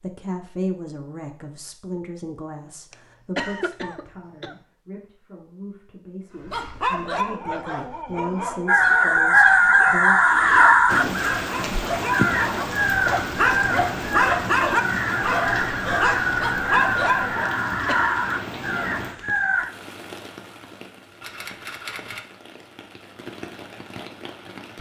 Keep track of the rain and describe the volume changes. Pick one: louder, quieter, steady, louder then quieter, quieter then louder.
quieter.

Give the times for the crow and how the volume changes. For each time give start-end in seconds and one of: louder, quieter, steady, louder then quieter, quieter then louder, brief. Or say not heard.
8.7-19.6 quieter.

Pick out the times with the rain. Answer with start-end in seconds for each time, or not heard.
10.8-24.7.